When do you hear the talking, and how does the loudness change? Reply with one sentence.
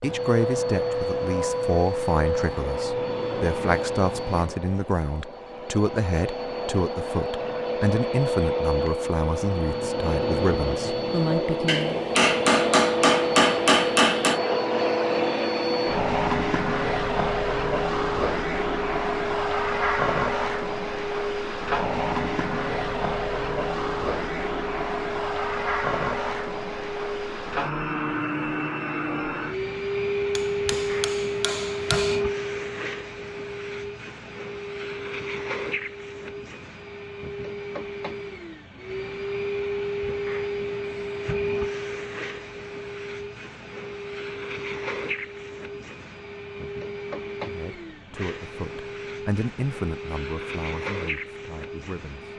You can hear the talking from 0.0 to 12.1 s, at a steady volume; and from 47.4 to 52.3 s, getting louder then quieter.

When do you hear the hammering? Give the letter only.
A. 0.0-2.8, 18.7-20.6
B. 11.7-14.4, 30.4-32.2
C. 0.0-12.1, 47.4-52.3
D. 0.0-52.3
B.